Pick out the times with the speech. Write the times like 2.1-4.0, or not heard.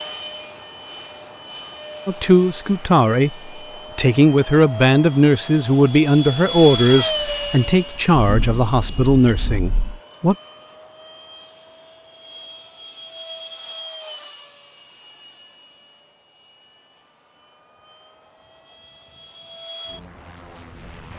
2.0-10.3.